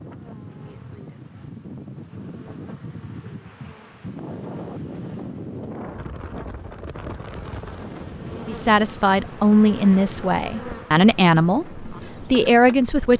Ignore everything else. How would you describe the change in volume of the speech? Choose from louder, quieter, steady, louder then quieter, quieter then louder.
steady.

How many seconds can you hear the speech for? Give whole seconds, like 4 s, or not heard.
5 s.